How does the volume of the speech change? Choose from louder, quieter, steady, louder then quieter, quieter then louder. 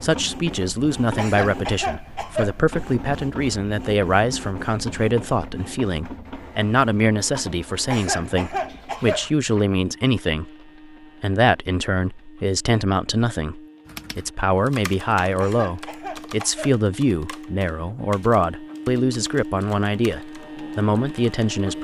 steady.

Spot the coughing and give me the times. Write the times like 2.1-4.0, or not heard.
1.1-2.6, 7.8-9.3, 15.3-16.8.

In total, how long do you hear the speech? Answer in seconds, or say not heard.
21 s.